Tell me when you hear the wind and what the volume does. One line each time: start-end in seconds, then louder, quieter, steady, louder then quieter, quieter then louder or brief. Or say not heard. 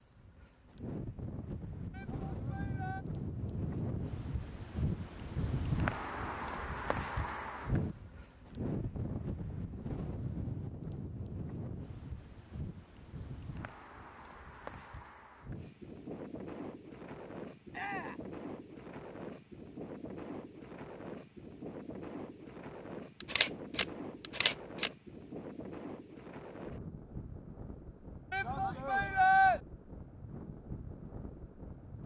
0.0-32.0 quieter.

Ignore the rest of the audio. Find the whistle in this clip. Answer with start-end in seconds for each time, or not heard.
not heard.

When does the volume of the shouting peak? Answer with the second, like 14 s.
29 s.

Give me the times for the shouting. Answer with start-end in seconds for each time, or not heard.
1.9-3.0, 17.7-18.2, 28.3-29.6.